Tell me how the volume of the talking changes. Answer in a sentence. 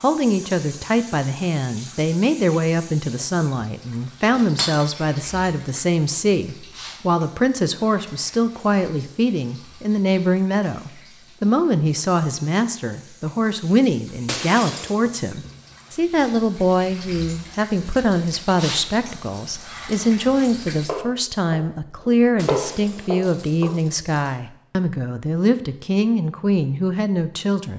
The volume of the talking stays about the same.